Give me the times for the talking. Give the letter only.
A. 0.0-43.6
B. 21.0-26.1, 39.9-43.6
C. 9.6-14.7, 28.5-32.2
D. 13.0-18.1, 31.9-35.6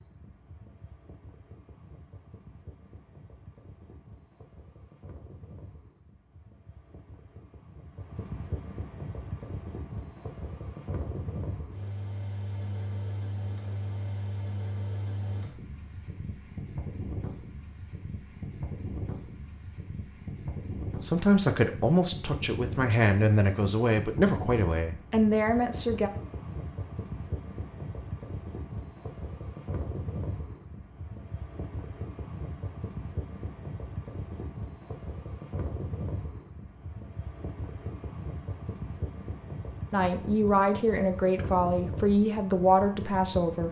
B.